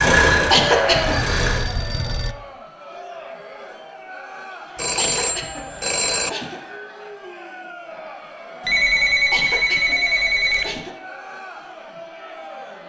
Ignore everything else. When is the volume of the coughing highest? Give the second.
1 s.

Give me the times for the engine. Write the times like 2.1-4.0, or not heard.
0.0-1.6.